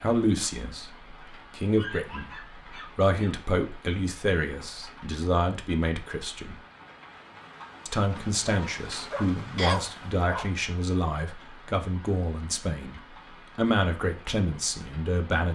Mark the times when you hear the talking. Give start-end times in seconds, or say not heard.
0.0-6.5, 7.8-15.4.